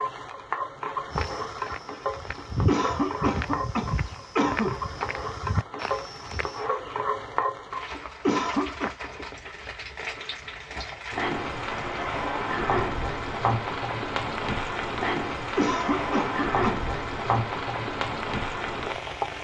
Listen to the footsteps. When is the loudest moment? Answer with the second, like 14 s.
3 s.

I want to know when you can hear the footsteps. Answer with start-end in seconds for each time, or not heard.
1.1-6.7.